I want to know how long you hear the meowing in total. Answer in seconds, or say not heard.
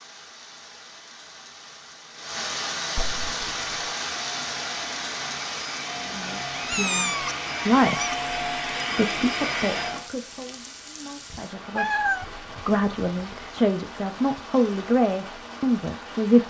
5 s.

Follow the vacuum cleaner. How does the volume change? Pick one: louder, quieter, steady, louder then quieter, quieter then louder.
louder.